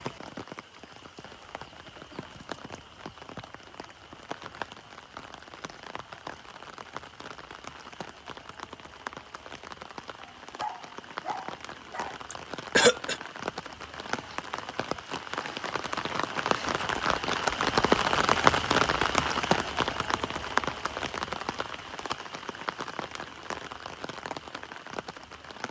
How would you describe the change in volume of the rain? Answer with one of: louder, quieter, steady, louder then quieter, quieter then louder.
louder then quieter.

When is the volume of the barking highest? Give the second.
11 s.